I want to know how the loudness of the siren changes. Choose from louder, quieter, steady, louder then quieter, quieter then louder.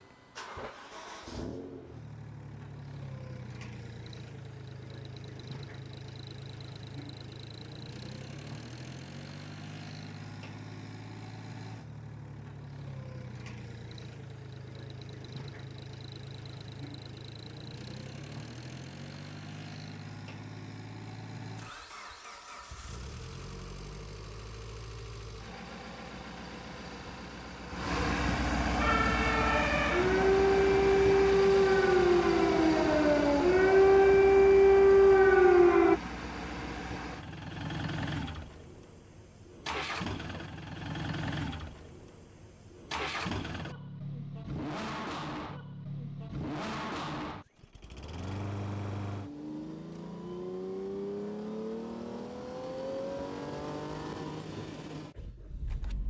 louder.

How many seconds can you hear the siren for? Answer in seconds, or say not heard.
7 s.